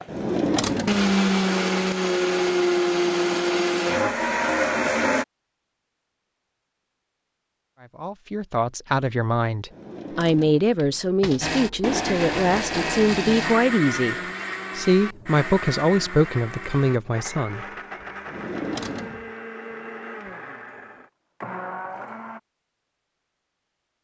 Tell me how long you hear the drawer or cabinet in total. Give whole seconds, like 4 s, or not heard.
4 s.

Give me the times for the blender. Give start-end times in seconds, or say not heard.
0.0-5.2, 11.4-22.4.